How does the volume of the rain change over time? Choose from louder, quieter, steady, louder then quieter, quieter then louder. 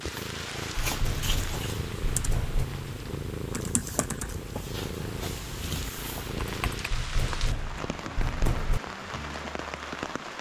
quieter then louder.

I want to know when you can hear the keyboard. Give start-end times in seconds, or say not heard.
1.2-6.9.